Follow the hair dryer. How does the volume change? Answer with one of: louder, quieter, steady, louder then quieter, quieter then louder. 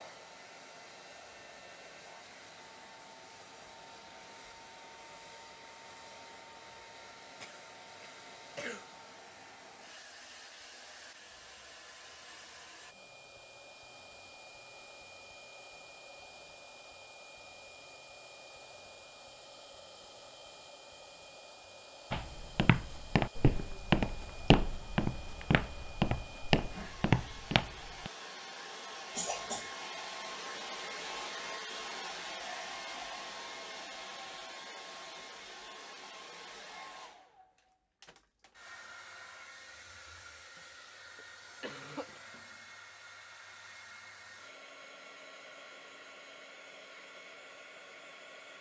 louder then quieter.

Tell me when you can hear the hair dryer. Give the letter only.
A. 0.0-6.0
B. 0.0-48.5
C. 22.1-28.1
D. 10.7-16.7
B.